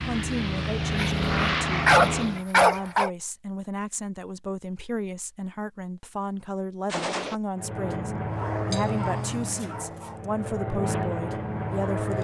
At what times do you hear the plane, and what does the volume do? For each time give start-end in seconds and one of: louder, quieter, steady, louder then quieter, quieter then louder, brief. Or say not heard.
0.0-2.5 brief
7.5-12.1 quieter then louder.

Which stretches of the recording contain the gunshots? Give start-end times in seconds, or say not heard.
6.8-7.4.